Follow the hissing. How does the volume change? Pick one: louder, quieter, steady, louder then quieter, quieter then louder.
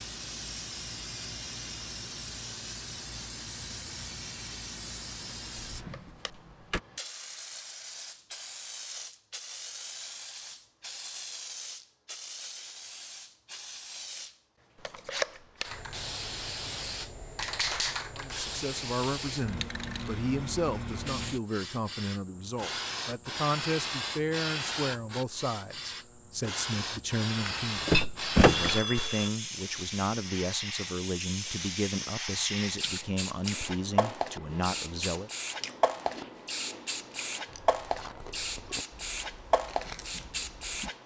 louder.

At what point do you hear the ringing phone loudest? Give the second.
28 s.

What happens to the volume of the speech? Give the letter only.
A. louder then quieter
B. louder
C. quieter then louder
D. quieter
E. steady
E.